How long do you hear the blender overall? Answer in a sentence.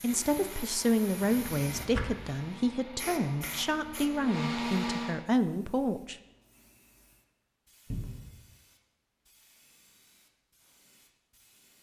You can hear the blender for 5 seconds altogether.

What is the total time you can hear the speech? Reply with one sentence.
The speech can be heard for 6 seconds in total.